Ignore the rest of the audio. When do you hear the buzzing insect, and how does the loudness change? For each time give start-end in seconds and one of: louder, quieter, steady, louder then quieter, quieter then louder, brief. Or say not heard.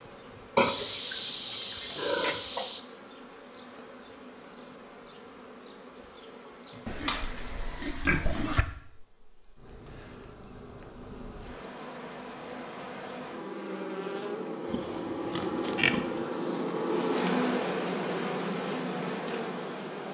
0.0-20.0 louder.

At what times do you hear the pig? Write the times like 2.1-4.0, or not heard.
0.6-2.9, 6.8-8.7, 14.7-16.2.